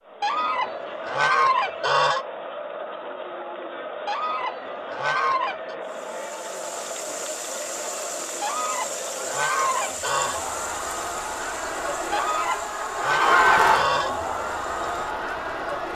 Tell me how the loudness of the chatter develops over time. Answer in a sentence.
The loudness of the chatter goes up.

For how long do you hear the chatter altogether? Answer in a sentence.
The chatter can be heard for 16 seconds in total.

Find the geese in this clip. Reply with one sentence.
The geese can be heard from 0.2 to 2.2 s, from 4.0 to 5.8 s, from 8.4 to 10.4 s and from 12.1 to 14.2 s.